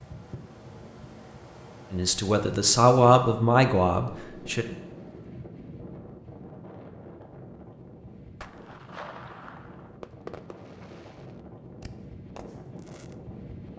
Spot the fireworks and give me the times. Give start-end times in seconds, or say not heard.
8.4-13.2.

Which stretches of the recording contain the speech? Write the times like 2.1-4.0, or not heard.
1.9-4.7.